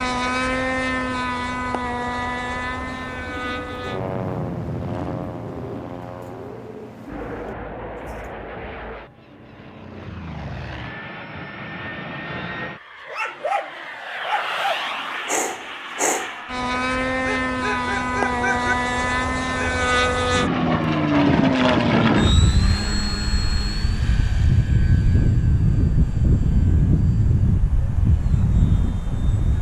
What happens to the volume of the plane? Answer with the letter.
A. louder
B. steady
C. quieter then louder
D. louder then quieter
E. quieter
C.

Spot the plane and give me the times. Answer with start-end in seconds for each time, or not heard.
0.0-29.5.